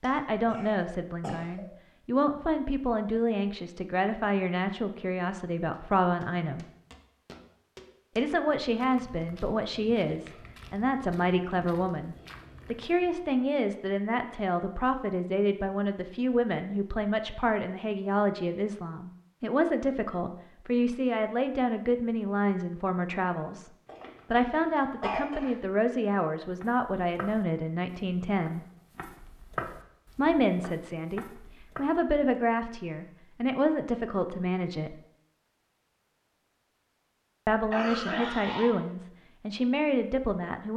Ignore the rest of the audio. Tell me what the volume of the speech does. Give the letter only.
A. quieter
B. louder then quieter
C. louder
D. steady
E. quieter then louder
D.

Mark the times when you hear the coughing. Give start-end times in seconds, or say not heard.
0.0-1.6, 23.9-25.6, 37.7-38.8.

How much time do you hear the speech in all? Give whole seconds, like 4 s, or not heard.
35 s.